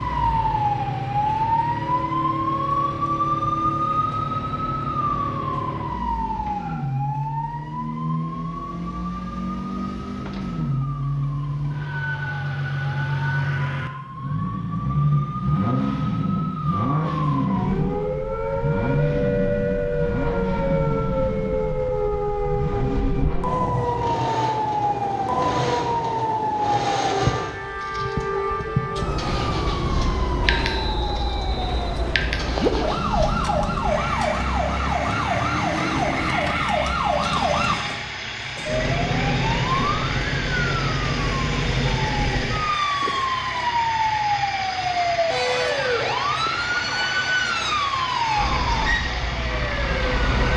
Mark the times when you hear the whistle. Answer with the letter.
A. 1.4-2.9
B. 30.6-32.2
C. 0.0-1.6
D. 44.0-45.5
B.